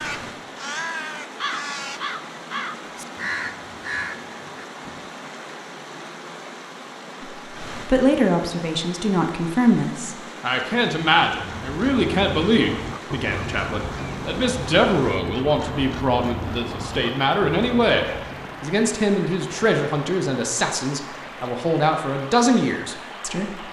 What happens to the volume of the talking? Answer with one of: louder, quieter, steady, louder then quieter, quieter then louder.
steady.